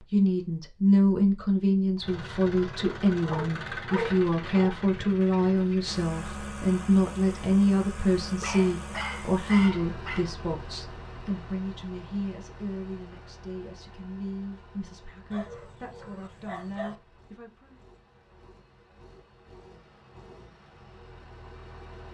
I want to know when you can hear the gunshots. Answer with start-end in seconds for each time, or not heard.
not heard.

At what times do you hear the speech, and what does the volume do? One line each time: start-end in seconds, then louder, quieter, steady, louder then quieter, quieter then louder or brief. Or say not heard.
0.0-17.8 quieter.